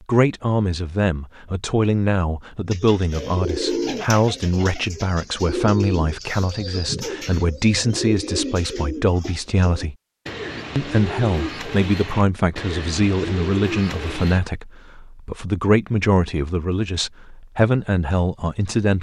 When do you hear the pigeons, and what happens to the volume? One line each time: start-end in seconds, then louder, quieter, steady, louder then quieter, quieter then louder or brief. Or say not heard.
2.6-14.4 steady.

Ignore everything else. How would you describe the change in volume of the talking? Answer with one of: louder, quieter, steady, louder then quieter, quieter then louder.
steady.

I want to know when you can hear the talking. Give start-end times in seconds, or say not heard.
0.1-9.9, 10.8-18.9.